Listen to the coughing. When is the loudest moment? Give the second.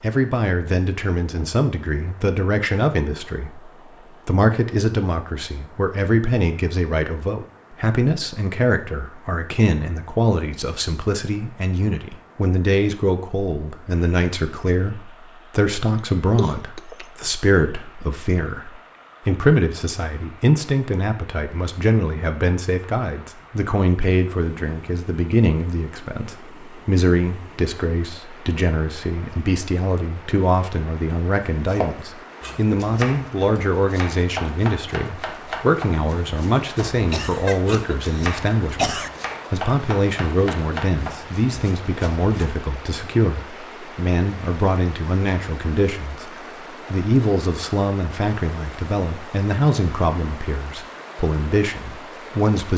39 s.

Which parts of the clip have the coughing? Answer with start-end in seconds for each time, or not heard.
15.9-17.1, 37.1-39.1.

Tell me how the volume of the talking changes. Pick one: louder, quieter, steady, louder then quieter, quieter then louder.
steady.